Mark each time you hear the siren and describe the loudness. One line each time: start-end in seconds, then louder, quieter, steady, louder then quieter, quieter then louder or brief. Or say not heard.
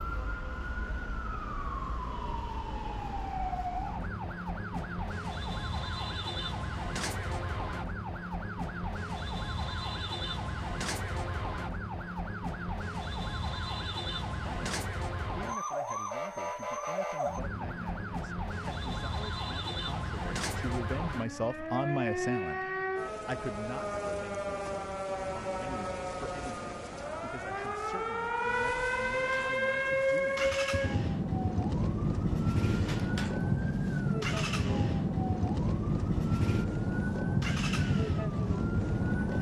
0.0-39.3 louder.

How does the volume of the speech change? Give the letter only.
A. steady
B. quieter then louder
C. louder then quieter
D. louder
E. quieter
C.